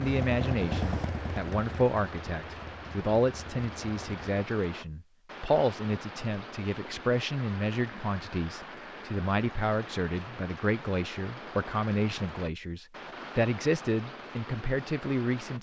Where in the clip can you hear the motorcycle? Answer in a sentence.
You can hear the motorcycle from 0.0 to 4.3 s.